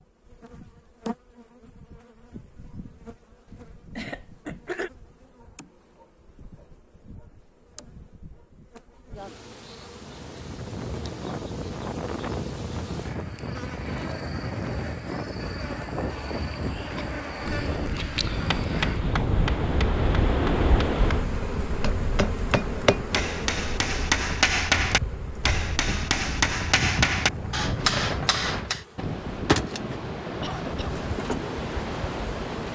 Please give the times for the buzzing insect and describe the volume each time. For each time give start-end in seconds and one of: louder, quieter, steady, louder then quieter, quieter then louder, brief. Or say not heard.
0.0-32.7 louder.